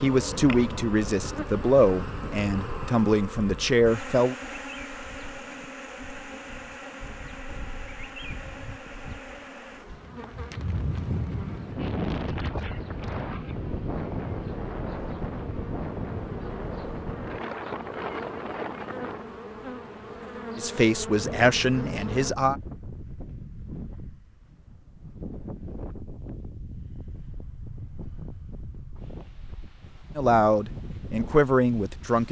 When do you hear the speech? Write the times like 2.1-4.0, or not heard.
0.0-4.3, 20.6-22.6, 30.1-32.2.